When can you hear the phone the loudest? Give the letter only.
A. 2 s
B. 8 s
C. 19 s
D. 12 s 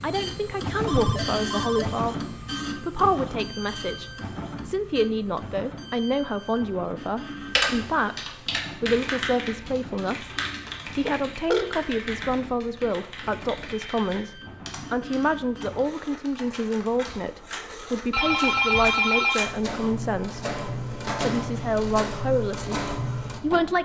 C.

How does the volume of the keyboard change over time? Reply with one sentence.
The volume of the keyboard goes down.